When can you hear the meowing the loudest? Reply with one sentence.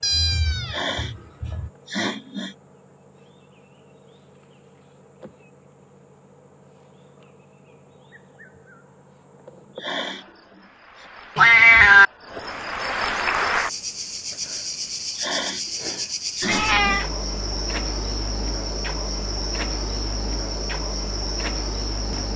The volume of the meowing peaks at 12 seconds.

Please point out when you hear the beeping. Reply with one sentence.
You can't hear the beeping here.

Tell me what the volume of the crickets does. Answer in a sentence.
The loudness of the crickets goes up.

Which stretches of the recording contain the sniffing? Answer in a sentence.
You can hear the sniffing from 0.7 to 1.1 s, from 1.9 to 2.5 s, from 9.8 to 11.1 s, from 15.2 to 15.7 s and from 16.4 to 17.1 s.